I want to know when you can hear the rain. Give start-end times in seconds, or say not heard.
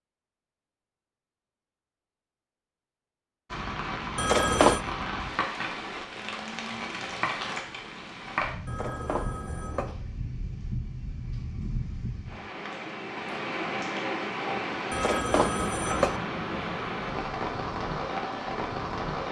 3.5-19.2.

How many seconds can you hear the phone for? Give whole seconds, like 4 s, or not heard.
3 s.